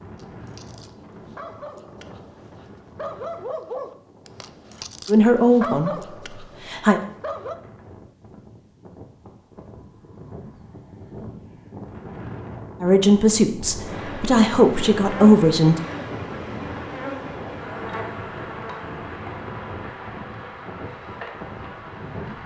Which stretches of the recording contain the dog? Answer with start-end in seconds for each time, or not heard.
0.1-7.5.